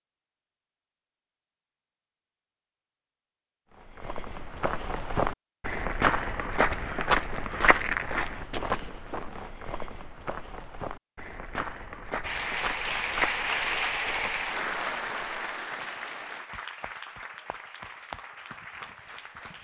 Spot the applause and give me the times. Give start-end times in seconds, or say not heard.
12.2-19.5.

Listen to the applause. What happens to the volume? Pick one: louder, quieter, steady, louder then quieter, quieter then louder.
quieter.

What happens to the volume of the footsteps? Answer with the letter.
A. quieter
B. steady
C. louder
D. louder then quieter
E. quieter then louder
A.